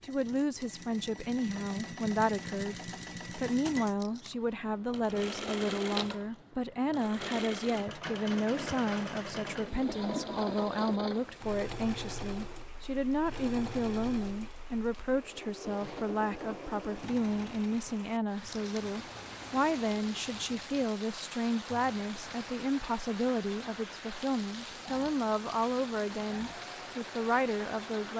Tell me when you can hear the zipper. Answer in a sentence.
You can hear the zipper from 8.4 to 10.3 s and from 15.7 to 16.1 s.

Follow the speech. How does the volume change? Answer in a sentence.
The loudness of the speech stays about the same.